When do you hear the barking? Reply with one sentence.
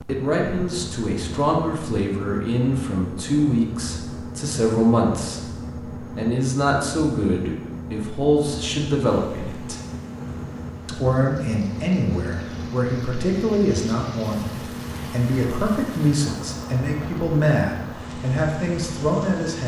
You can't hear the barking here.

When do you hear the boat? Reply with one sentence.
The boat can be heard from 0.0 to 19.6 s.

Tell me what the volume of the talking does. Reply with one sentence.
The loudness of the talking stays about the same.